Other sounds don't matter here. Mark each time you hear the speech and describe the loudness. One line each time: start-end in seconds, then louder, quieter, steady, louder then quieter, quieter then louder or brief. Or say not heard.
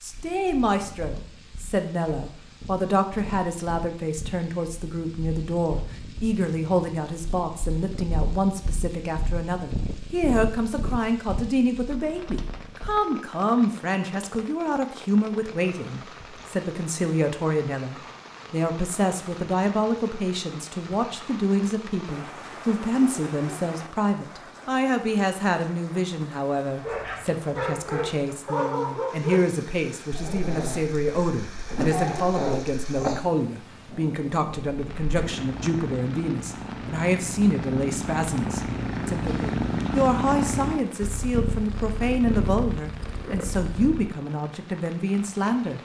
0.0-45.8 steady.